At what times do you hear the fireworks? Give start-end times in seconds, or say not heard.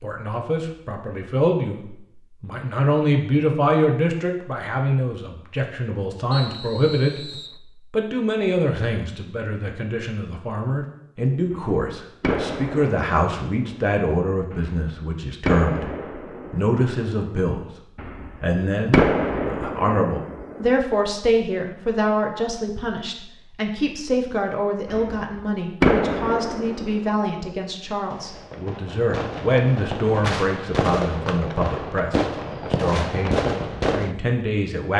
11.5-20.7, 24.9-34.1.